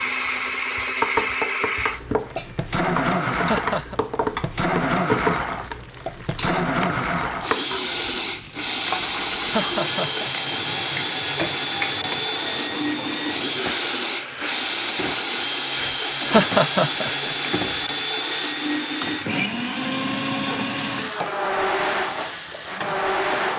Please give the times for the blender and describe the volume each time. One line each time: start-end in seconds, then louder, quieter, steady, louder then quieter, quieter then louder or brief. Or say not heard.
0.0-23.5 steady.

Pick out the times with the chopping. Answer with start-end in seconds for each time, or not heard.
not heard.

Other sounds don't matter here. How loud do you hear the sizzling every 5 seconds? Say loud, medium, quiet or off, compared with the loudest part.
loud, loud, loud, loud, medium.